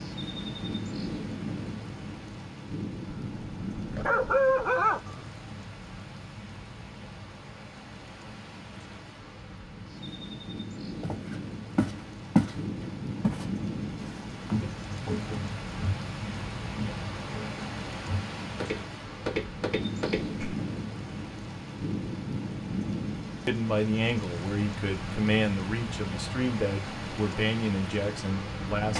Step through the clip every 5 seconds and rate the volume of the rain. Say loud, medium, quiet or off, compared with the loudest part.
loud, medium, loud, loud, loud, loud.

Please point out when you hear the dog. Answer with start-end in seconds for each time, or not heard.
3.3-5.2.